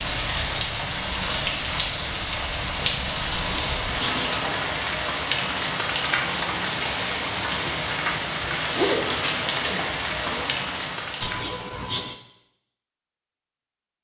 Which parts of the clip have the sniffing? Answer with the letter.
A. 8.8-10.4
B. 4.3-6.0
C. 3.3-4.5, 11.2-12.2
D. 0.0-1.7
C.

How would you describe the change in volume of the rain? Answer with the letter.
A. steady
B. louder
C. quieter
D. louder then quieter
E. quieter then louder
A.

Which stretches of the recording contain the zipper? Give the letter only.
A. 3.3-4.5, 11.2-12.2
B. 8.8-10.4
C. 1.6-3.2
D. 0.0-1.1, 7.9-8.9
B.